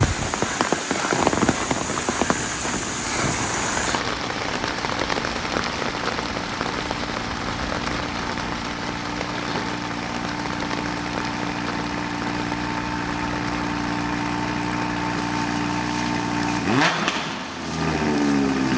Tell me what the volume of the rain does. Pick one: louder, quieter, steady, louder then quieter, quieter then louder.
quieter.